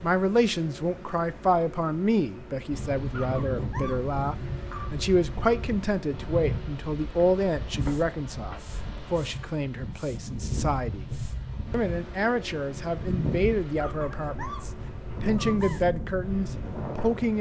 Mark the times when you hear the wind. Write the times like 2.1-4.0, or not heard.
2.7-17.3.